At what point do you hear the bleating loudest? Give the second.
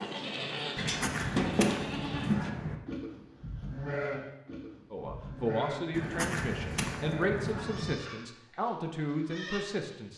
2 s.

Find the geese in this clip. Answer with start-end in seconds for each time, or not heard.
0.8-2.8, 5.9-8.0.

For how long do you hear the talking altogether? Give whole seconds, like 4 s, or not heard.
5 s.